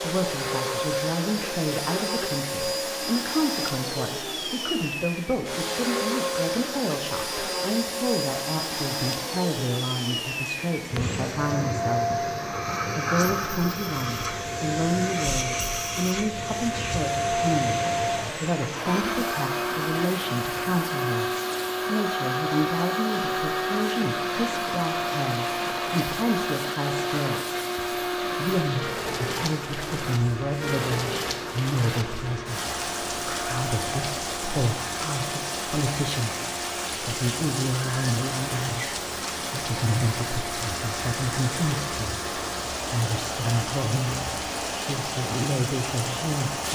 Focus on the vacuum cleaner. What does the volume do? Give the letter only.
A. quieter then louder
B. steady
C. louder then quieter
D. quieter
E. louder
D.